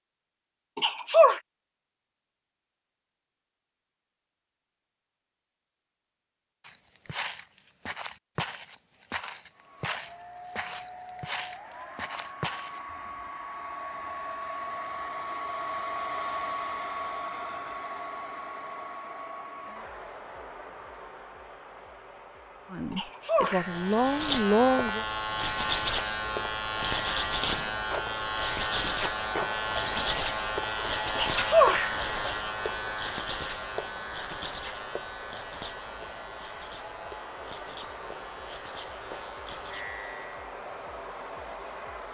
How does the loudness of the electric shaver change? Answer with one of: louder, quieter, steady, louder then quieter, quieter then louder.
quieter.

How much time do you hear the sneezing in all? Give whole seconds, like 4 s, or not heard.
2 s.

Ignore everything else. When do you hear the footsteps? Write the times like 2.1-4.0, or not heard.
6.6-12.8.